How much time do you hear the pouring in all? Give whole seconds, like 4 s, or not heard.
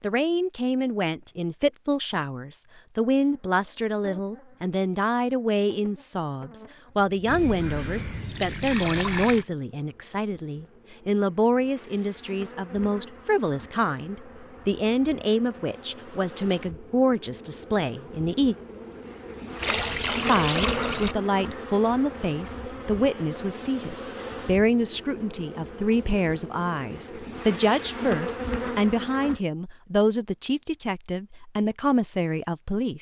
4 s.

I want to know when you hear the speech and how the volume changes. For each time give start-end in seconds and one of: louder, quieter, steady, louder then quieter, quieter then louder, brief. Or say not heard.
0.0-18.6 steady
20.2-32.9 steady.